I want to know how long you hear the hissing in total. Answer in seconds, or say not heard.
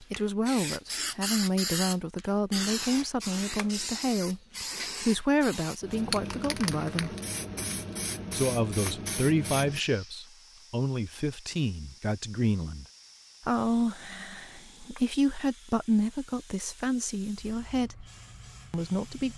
19 s.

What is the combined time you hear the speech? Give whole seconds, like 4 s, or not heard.
17 s.